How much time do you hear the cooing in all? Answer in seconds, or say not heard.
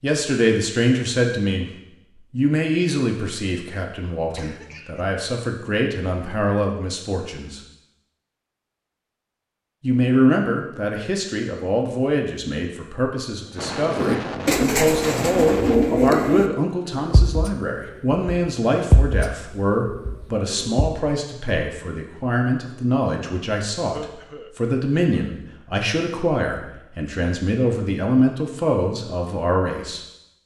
7 s.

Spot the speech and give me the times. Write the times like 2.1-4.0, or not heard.
0.0-1.7, 2.3-7.6, 9.8-30.0.